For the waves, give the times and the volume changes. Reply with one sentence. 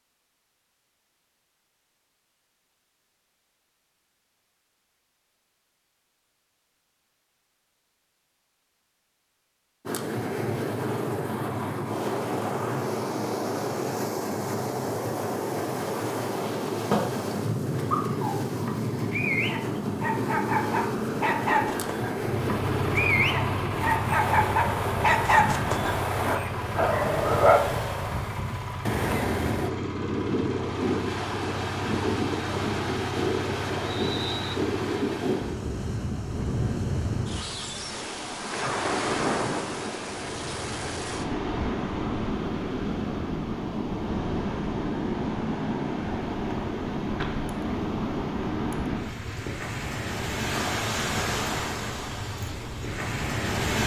You can hear the waves from 9.8 to 53.8 s, at a steady volume.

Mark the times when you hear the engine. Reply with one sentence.
You can hear the engine from 22.1 to 35.1 s.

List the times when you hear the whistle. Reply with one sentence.
You can hear the whistle from 33.9 to 34.6 s.